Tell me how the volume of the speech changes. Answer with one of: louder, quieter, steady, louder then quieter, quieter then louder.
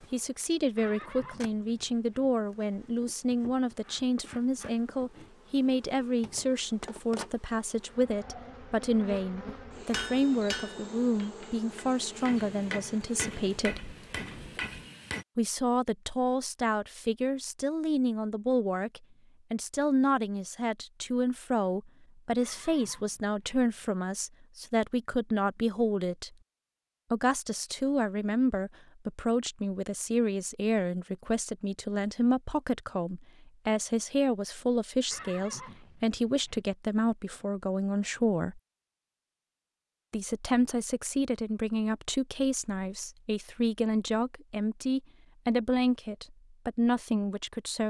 steady.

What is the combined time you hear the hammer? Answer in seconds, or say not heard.
5 s.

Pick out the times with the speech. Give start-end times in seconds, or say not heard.
0.1-13.9, 15.3-26.3, 27.1-38.6, 40.1-47.8.